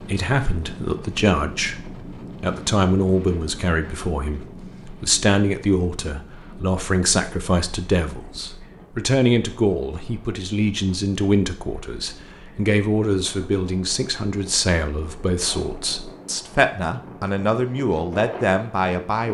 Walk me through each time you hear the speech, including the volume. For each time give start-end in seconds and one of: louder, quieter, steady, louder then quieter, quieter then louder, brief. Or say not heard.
0.0-19.2 steady.